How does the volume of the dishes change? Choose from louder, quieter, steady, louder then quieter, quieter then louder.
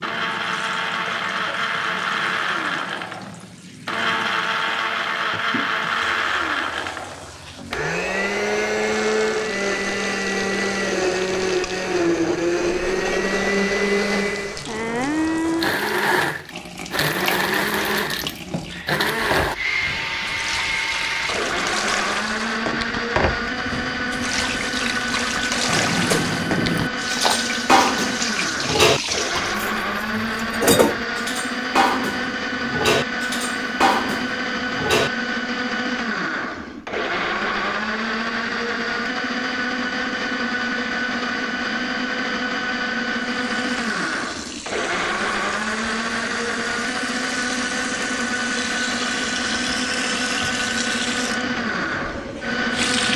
steady.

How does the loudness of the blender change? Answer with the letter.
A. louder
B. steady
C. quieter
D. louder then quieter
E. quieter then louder
B.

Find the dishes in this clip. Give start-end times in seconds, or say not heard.
25.6-35.1.